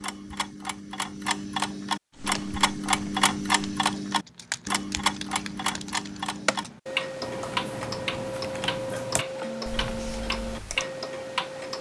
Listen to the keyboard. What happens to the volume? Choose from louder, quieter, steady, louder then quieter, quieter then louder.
louder.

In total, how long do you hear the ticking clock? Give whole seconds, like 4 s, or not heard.
12 s.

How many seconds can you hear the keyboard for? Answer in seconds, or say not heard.
9 s.